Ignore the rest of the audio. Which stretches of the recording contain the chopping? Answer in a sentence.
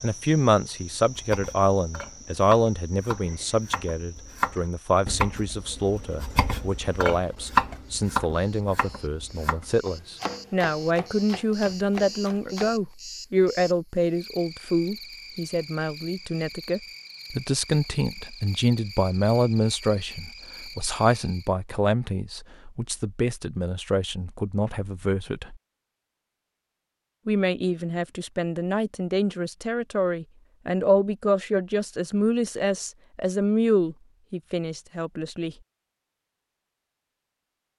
You can hear the chopping from 0.8 to 12.8 s.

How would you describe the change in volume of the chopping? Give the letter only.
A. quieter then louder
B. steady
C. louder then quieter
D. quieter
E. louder
C.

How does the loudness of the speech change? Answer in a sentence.
The loudness of the speech stays about the same.